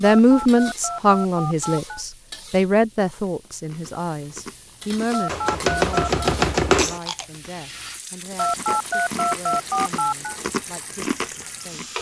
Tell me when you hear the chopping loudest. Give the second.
7 s.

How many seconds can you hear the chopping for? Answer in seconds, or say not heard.
2 s.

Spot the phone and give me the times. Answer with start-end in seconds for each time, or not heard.
0.0-2.0, 5.1-6.2, 8.3-10.3.